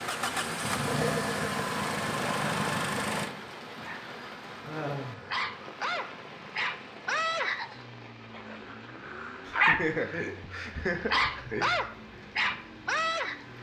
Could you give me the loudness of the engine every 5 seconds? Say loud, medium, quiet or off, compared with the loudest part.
loud, quiet, quiet.